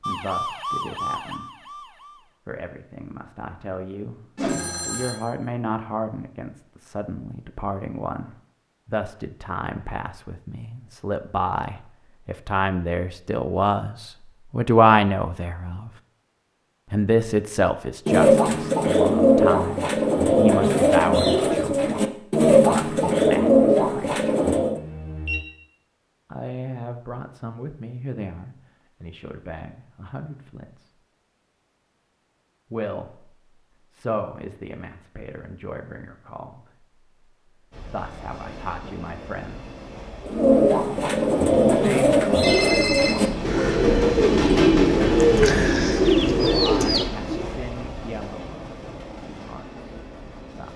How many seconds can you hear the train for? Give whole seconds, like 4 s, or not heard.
13 s.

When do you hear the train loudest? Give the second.
45 s.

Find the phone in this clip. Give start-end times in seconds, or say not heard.
4.3-5.2, 24.8-25.4, 42.4-43.3.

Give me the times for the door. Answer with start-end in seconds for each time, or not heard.
not heard.